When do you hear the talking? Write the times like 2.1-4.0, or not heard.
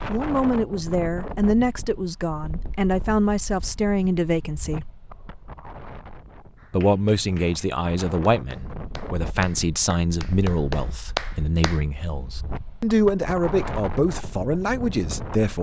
0.1-4.9, 6.7-15.5.